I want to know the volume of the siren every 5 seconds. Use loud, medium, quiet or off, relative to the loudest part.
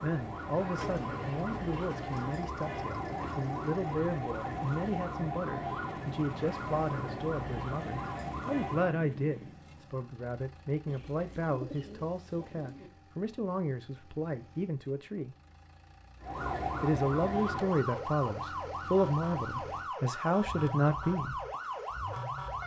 loud, loud, off, loud, loud.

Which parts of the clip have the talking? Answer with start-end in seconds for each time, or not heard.
0.0-15.3, 16.8-21.4.